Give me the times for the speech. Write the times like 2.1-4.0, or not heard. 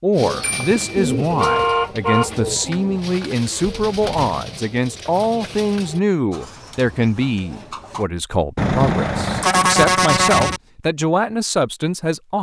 0.0-12.3.